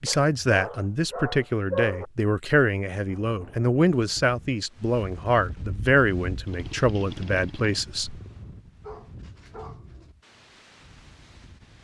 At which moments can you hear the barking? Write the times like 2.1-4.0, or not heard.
0.1-2.0, 8.8-10.2.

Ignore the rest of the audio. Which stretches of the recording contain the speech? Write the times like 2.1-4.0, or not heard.
0.0-8.2.